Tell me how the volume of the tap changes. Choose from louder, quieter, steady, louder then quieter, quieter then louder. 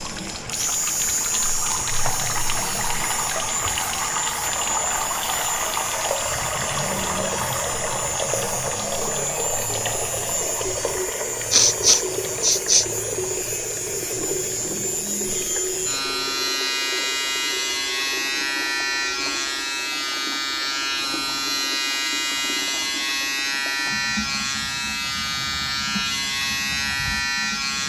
quieter.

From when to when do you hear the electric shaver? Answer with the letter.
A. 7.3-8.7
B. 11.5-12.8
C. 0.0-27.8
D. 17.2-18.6
C.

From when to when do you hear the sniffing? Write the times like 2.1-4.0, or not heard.
11.5-12.8.